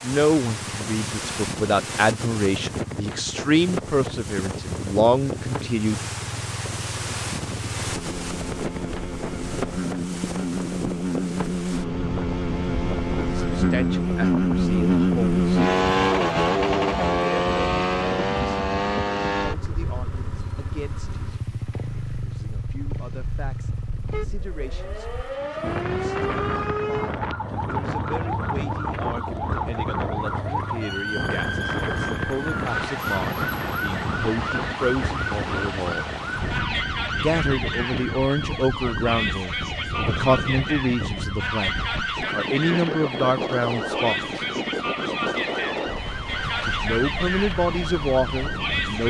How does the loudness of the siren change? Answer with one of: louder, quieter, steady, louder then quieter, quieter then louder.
steady.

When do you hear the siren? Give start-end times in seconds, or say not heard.
24.1-49.0.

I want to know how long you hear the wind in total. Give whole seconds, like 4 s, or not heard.
49 s.